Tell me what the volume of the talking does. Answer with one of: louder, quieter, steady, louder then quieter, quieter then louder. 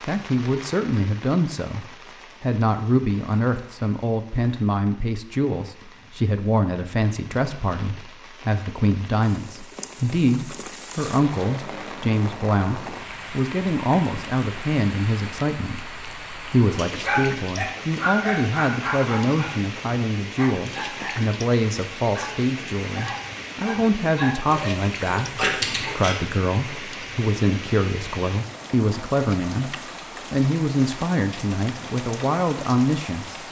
steady.